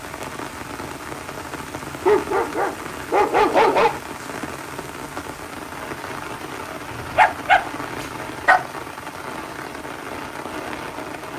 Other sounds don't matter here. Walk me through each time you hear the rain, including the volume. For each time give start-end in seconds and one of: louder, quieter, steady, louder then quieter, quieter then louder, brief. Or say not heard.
0.0-11.3 steady.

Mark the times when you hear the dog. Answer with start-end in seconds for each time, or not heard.
2.0-3.9, 6.9-8.6.